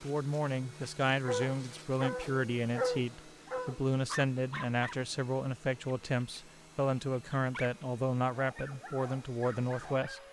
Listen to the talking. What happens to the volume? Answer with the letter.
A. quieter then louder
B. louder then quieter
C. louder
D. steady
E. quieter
D.